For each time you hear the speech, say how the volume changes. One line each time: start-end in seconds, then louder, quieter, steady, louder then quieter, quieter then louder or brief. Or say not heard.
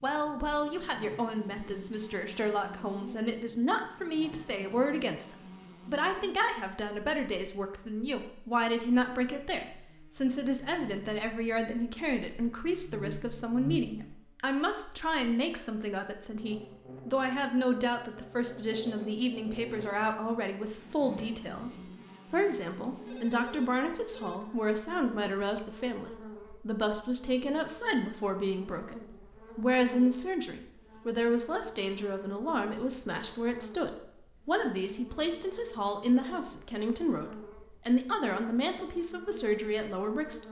0.0-40.4 steady.